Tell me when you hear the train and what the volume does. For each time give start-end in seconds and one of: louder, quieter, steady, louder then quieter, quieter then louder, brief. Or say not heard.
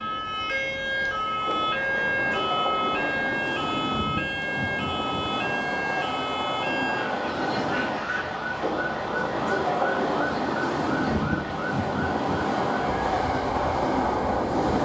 0.0-14.8 louder.